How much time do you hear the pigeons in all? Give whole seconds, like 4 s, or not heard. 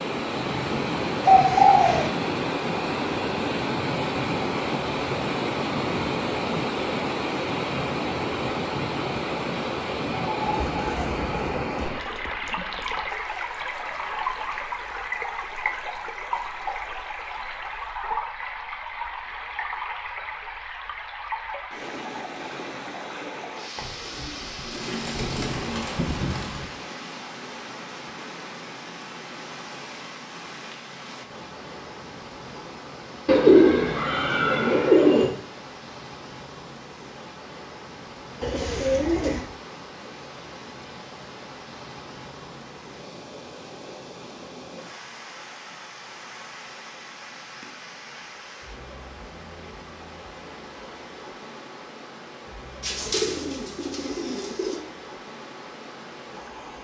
11 s.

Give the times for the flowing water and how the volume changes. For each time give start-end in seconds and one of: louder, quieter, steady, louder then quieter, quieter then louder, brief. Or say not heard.
0.0-56.7 quieter.